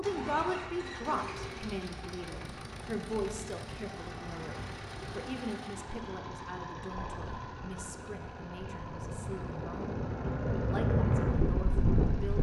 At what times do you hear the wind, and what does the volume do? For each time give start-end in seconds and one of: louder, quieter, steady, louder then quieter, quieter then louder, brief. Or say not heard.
0.0-12.3 louder.